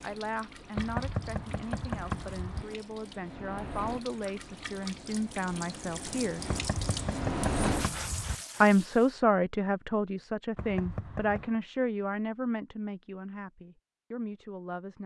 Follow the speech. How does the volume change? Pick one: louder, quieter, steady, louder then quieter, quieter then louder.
louder then quieter.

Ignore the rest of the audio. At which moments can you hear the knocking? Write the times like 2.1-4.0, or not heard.
0.8-2.7, 6.5-8.4, 10.6-11.6.